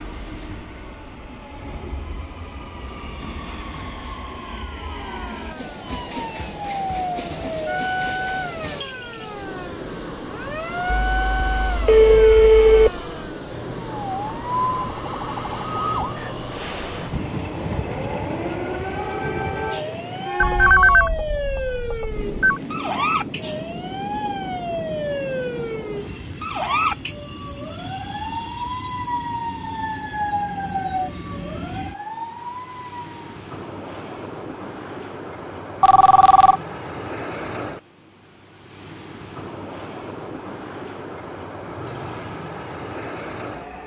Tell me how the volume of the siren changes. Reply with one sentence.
The loudness of the siren stays about the same.